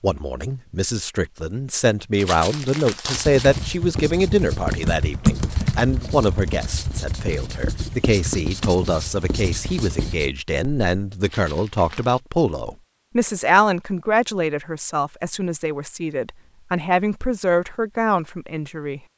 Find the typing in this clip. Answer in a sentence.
The typing can be heard from 3.4 to 10.0 s.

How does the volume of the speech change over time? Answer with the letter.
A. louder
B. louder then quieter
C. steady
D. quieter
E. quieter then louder
C.